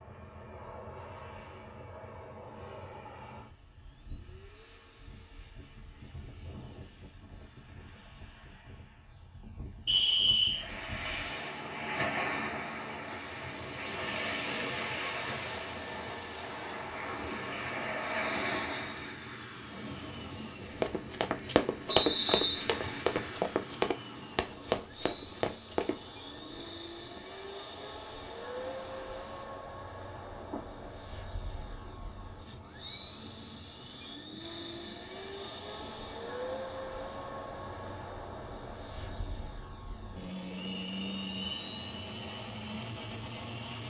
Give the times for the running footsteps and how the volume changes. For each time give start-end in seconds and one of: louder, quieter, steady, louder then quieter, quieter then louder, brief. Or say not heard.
20.6-26.0 steady.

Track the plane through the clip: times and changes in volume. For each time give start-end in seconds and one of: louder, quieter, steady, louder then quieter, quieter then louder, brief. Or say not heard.
0.0-43.8 louder.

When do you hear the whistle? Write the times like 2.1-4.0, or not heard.
9.8-10.7, 21.9-22.6, 40.5-41.5.